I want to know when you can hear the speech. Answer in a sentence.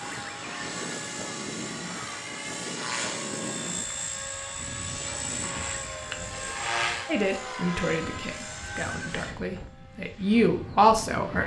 You can hear the speech from 7.0 to 11.4 s.